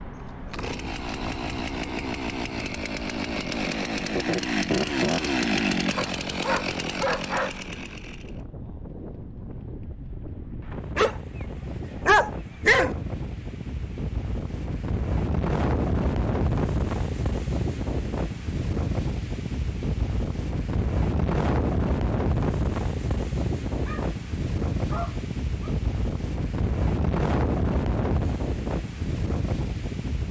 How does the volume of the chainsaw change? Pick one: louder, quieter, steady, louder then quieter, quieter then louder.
louder then quieter.